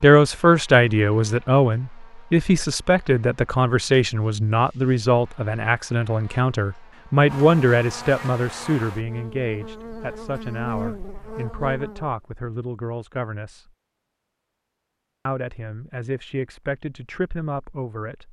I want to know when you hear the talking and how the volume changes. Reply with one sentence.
The talking can be heard from 0.0 to 13.7 s, getting quieter; and briefly from 15.2 to 18.2 s.